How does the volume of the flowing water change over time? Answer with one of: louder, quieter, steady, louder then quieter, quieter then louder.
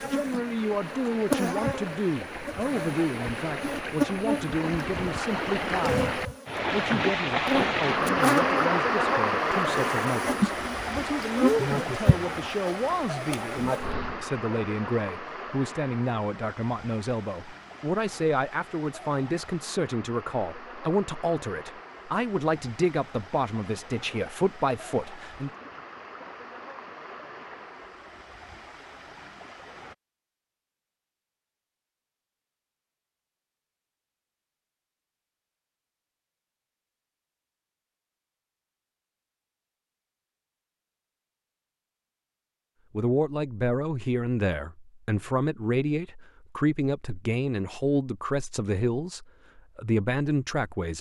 louder then quieter.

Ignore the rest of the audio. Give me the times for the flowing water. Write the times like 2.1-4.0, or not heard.
0.0-29.9.